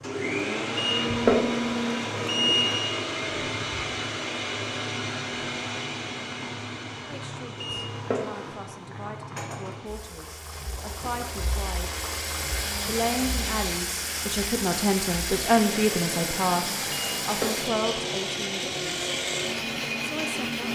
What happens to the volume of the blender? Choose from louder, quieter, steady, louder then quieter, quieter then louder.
quieter then louder.